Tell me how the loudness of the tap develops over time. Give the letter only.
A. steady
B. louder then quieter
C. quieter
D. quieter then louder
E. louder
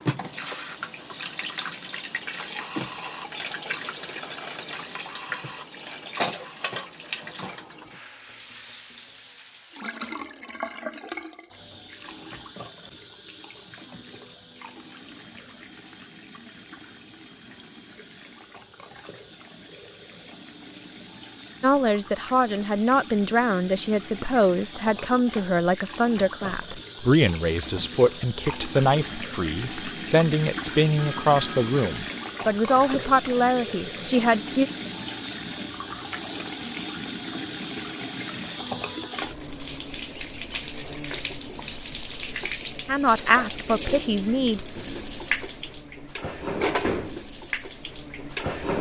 D.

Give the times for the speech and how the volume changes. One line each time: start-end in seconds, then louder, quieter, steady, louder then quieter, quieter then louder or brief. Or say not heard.
21.6-34.7 steady
42.9-44.6 brief.